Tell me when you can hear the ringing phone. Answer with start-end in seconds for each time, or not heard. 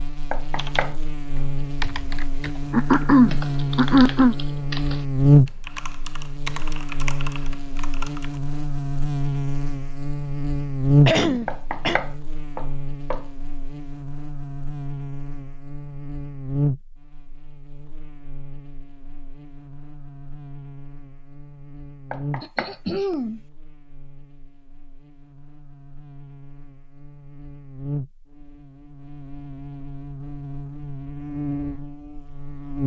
not heard.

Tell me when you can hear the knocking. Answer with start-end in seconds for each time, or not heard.
0.3-0.9, 11.4-13.2, 22.1-22.8.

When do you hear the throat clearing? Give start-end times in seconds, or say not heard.
2.7-4.3, 11.1-12.0, 22.4-23.4.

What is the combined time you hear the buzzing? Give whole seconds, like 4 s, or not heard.
33 s.